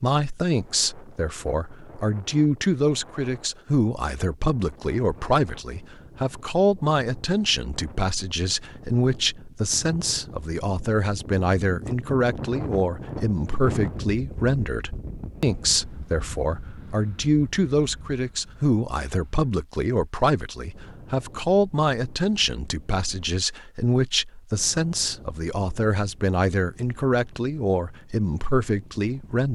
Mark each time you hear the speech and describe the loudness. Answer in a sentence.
The speech can be heard from 0.0 to 29.5 s, at a steady volume.